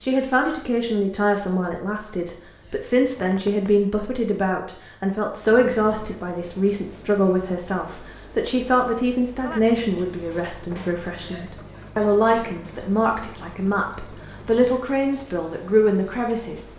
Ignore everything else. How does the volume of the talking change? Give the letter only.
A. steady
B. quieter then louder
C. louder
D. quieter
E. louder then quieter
A.